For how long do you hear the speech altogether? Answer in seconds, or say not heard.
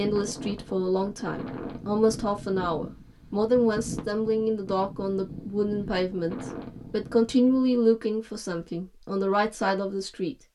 10 s.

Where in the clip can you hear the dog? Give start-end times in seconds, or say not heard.
not heard.